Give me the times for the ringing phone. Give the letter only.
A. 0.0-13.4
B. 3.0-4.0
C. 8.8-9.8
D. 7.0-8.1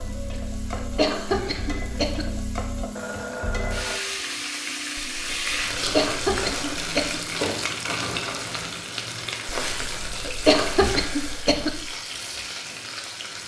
B.